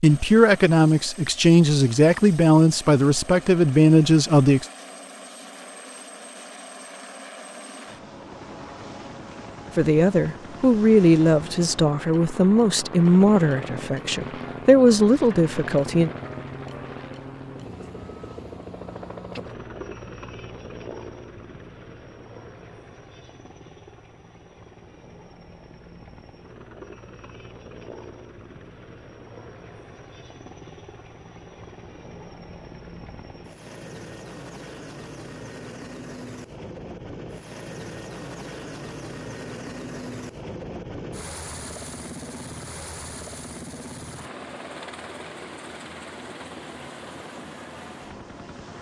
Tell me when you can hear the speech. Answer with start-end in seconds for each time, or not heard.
0.0-4.7, 9.8-16.1.